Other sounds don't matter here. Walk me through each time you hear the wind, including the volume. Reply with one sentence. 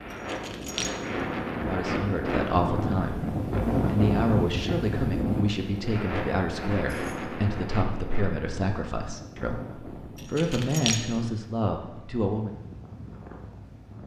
You can hear the wind from 0.0 to 14.0 s, getting quieter.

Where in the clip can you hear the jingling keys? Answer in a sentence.
The jingling keys can be heard from 0.1 to 0.9 s, from 6.9 to 7.3 s and from 10.2 to 11.0 s.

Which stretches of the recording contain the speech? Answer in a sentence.
The speech can be heard from 1.6 to 12.6 s.